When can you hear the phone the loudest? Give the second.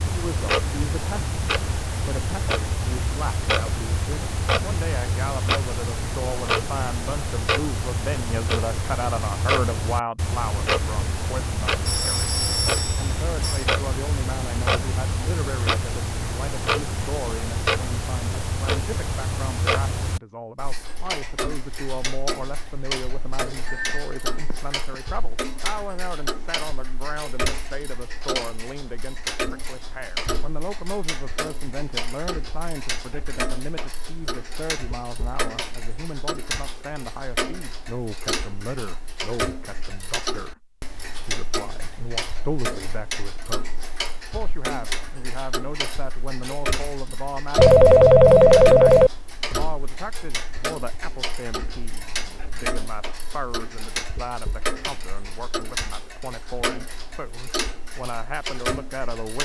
48 s.